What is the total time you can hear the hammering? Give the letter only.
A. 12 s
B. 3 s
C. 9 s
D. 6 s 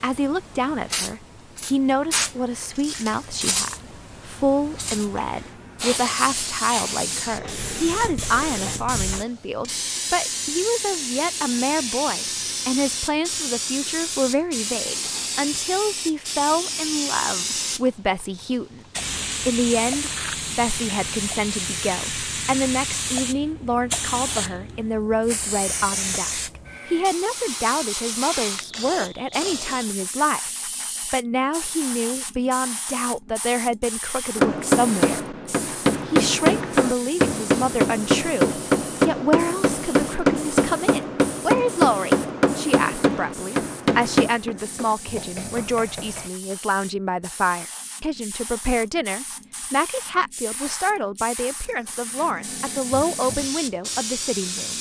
A.